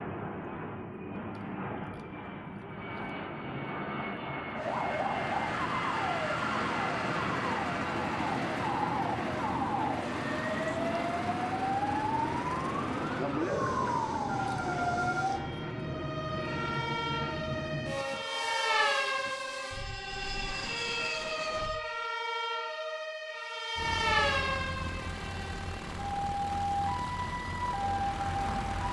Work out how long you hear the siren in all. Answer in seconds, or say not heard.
24 s.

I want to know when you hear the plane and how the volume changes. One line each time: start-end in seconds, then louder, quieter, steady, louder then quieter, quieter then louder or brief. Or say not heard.
0.0-21.8 steady
23.8-28.8 steady.